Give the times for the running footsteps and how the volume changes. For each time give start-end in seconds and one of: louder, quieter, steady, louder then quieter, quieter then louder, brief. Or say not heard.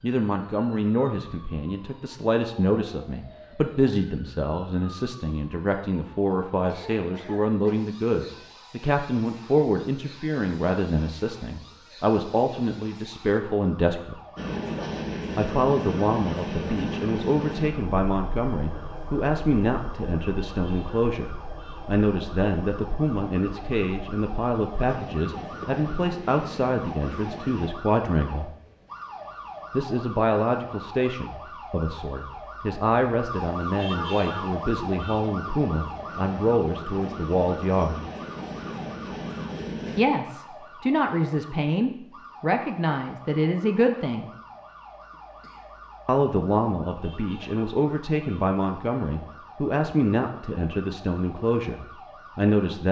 not heard.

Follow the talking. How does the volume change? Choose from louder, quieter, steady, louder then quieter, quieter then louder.
steady.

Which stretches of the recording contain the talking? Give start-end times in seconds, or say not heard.
0.0-14.2, 15.3-28.5, 29.7-38.0, 40.0-44.3, 46.0-52.8.